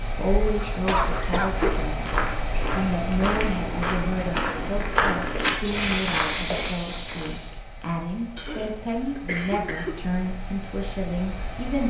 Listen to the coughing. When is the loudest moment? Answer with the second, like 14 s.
1 s.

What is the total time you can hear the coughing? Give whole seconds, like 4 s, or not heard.
3 s.